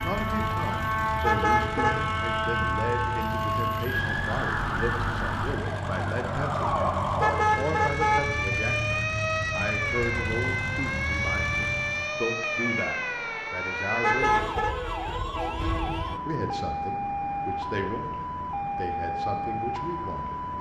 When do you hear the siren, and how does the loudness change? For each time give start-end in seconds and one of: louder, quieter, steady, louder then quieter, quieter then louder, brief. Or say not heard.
0.0-20.5 steady.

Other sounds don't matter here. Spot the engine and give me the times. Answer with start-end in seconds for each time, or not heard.
0.0-12.2.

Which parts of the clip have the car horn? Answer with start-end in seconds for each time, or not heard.
1.2-2.0, 7.2-8.2, 14.0-14.8.